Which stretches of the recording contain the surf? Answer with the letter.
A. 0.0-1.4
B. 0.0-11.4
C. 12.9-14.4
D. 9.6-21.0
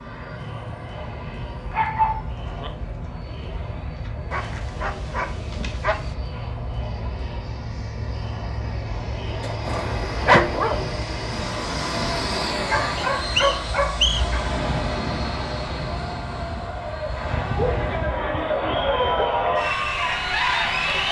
D.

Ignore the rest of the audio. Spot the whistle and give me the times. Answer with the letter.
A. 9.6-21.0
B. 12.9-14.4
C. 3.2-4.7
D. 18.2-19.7
B.